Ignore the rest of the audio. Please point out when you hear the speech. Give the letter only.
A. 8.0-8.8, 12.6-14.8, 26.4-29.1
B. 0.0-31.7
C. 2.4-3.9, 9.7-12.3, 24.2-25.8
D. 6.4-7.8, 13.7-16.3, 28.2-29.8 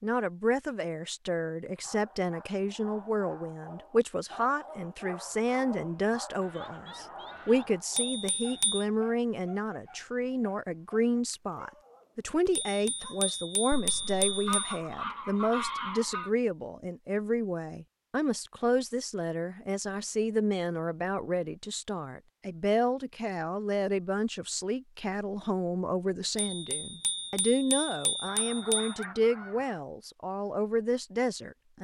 B.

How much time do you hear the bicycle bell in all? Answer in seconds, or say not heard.
6 s.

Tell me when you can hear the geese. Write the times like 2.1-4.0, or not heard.
6.4-7.8, 13.7-16.3, 28.2-29.8.